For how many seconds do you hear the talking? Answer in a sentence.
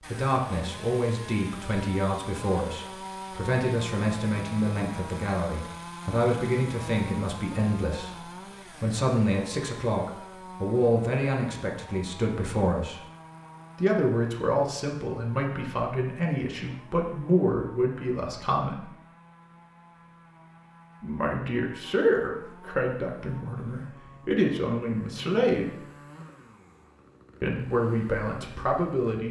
The talking can be heard for 25 seconds in total.